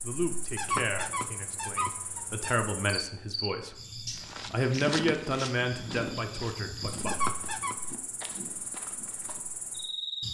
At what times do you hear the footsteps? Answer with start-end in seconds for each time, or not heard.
4.1-9.4.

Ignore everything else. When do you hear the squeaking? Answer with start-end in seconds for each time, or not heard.
0.6-2.5, 7.0-7.8.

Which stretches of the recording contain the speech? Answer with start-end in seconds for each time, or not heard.
0.0-7.1.